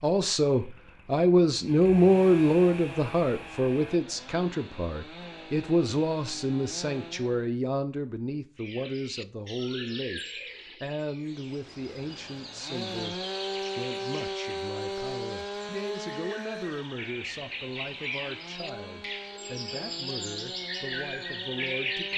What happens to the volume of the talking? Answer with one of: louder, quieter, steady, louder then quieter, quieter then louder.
quieter.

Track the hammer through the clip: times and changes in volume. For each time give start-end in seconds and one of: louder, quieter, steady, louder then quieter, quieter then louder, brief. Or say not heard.
not heard.